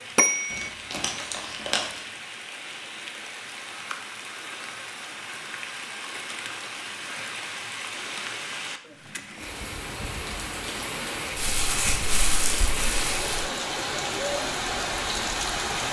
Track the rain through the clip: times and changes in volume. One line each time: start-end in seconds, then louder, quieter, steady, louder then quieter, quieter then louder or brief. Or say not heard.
0.0-15.8 louder.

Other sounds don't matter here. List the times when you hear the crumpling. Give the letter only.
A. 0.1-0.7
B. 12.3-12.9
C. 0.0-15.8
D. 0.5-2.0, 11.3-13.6
D.